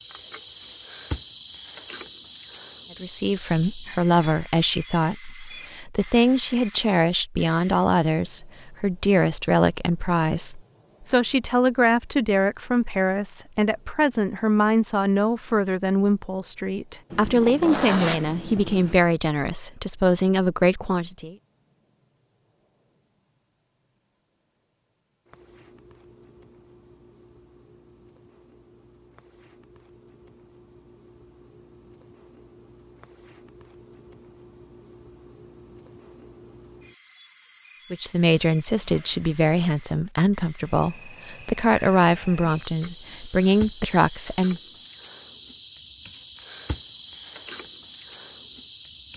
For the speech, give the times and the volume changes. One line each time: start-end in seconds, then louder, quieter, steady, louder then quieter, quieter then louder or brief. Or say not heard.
3.0-21.4 steady
37.9-44.6 steady.